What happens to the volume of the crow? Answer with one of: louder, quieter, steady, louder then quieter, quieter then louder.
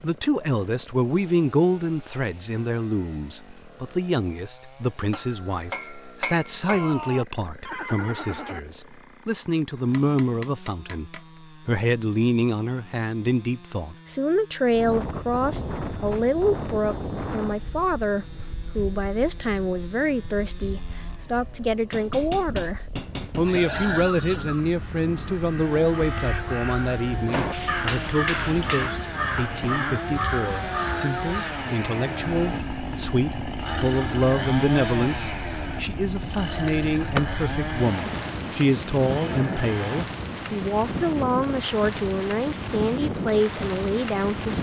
louder.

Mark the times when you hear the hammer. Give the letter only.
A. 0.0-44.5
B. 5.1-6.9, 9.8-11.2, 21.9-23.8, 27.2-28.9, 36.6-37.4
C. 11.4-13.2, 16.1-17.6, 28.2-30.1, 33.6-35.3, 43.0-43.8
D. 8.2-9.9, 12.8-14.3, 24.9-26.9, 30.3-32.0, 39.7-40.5
B.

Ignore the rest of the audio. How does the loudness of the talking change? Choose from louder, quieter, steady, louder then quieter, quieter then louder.
steady.